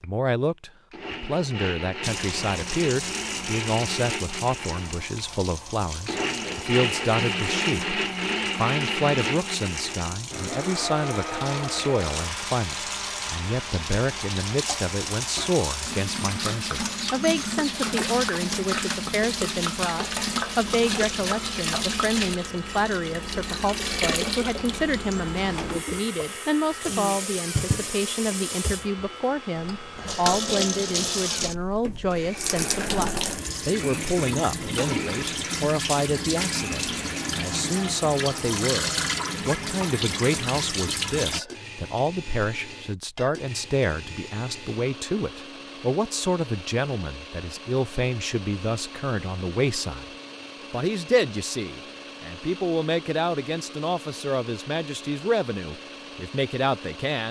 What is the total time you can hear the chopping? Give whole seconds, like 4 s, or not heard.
not heard.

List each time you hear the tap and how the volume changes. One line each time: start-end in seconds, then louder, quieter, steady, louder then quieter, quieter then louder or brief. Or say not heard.
2.0-41.4 louder.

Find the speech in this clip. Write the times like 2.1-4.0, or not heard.
0.0-50.0, 50.7-57.2.